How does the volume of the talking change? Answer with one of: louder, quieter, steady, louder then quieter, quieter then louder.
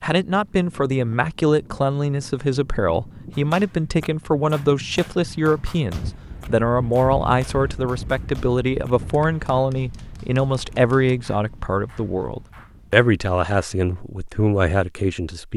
steady.